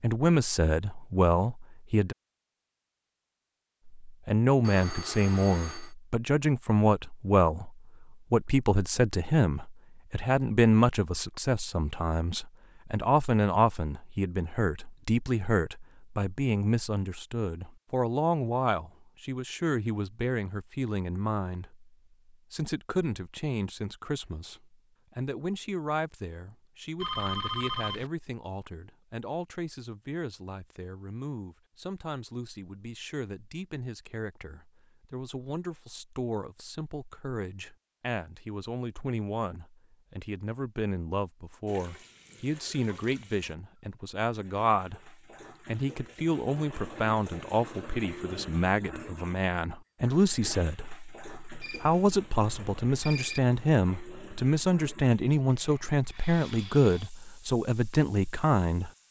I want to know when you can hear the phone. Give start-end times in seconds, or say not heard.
4.6-6.0, 27.0-28.1, 51.6-53.4.